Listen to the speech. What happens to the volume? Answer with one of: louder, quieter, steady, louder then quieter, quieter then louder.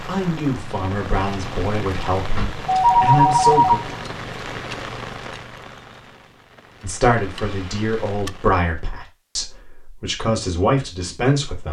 steady.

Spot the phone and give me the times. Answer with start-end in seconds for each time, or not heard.
2.4-4.0, 7.4-7.8.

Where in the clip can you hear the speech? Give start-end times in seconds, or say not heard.
0.0-3.8, 6.8-11.6.